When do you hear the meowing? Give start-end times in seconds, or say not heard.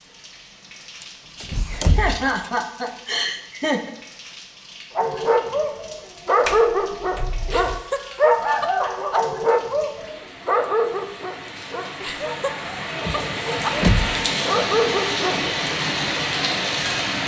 not heard.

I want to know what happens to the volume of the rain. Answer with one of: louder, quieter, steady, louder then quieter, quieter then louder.
louder.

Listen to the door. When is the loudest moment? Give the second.
14 s.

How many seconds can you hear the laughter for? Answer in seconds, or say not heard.
6 s.